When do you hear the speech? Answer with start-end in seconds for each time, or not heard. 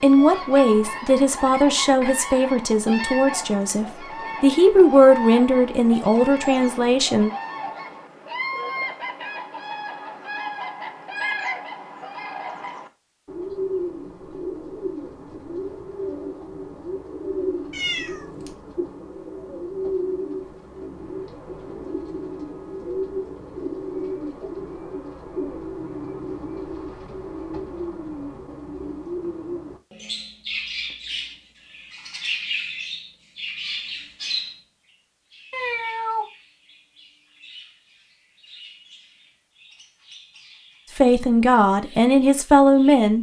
0.0-7.3, 41.0-43.1.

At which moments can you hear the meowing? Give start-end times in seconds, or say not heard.
17.7-18.6, 35.5-36.2.